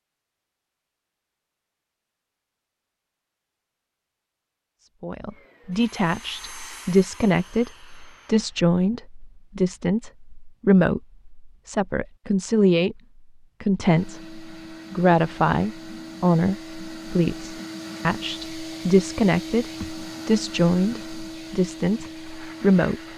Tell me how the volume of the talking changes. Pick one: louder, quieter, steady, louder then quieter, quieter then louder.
steady.